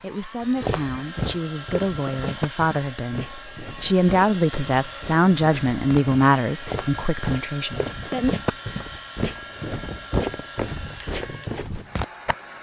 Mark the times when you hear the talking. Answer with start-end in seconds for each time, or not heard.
0.0-8.3.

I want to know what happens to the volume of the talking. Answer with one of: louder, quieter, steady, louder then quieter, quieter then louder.
louder then quieter.